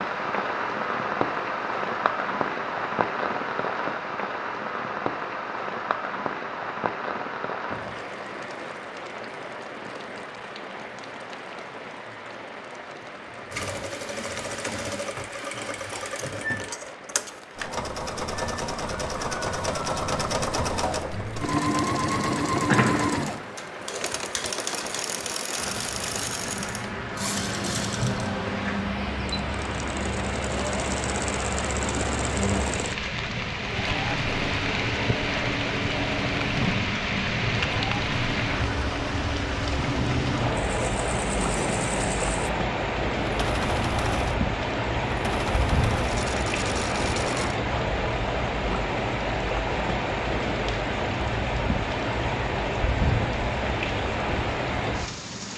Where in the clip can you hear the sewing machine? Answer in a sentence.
You can hear the sewing machine from 13.5 to 47.5 s.